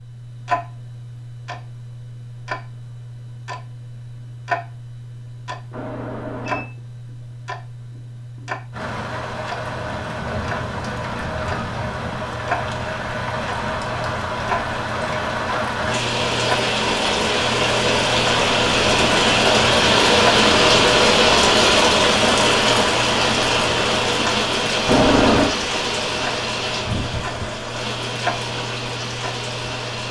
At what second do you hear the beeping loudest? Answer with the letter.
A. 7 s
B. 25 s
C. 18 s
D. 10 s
B.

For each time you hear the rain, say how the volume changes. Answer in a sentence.
The rain can be heard from 8.7 to 30.0 s, getting louder then quieter.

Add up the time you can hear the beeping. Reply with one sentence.
You can hear the beeping for 2 seconds altogether.